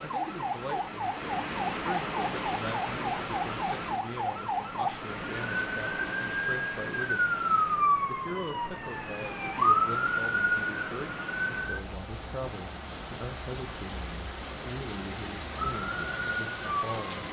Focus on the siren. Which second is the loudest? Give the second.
10 s.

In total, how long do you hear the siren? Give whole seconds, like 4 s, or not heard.
13 s.